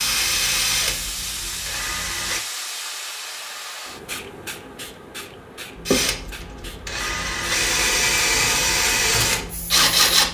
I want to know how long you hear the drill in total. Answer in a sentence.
The drill can be heard for 7 seconds in total.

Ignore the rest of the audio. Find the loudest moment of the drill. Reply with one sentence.
The loudest moment of the drill is at 10 seconds.